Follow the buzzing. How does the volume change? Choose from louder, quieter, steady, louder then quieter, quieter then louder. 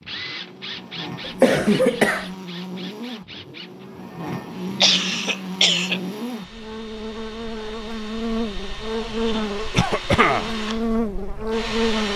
louder.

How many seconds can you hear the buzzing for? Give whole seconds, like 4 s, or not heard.
12 s.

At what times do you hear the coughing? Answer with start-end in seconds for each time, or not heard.
1.2-2.3, 4.3-6.0, 9.7-10.5.